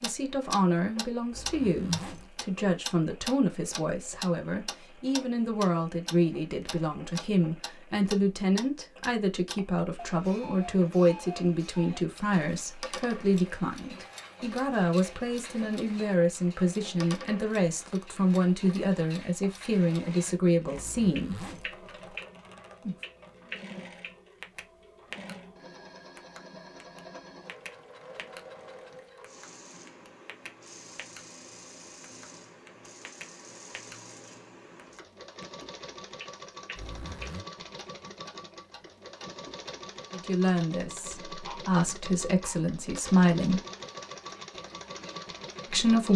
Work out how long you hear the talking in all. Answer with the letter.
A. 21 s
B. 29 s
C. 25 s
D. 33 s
C.